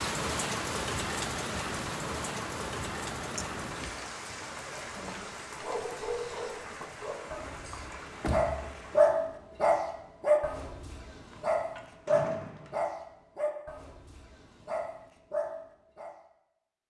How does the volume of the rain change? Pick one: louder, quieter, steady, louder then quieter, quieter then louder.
quieter.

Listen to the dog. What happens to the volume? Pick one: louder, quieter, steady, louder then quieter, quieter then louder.
louder then quieter.